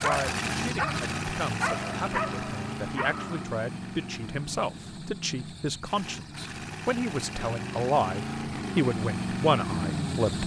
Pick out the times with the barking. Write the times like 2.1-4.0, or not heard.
0.0-3.5.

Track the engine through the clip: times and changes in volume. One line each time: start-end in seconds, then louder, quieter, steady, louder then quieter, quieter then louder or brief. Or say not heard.
0.0-10.4 quieter then louder.